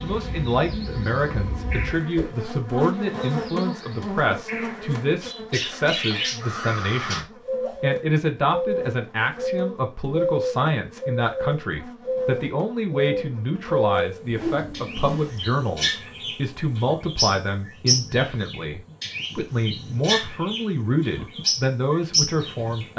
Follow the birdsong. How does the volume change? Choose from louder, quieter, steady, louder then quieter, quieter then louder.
louder.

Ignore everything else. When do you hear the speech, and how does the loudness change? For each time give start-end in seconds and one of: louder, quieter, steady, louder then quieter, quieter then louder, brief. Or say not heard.
0.0-22.9 steady.